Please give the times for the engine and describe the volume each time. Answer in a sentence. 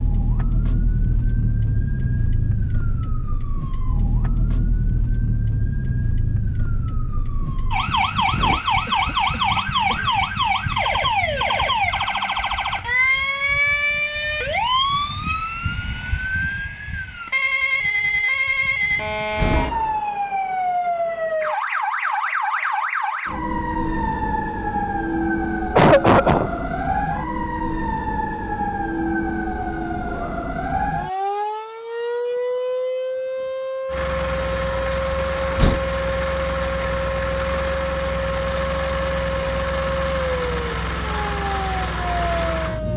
You can hear the engine from 33.9 to 42.9 s, at a steady volume.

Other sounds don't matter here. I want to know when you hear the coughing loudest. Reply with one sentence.
The loudest moment of the coughing is at 26 seconds.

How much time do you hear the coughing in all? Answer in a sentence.
The coughing can be heard for 2 seconds in total.